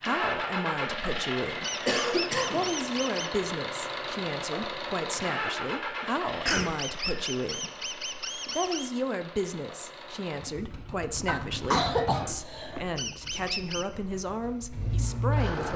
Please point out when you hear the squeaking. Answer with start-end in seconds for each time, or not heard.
1.6-3.3, 6.5-8.9, 12.9-13.8.